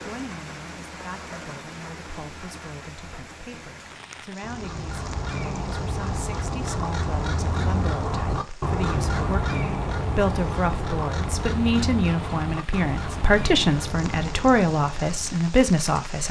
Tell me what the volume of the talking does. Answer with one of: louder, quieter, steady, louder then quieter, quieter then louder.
louder.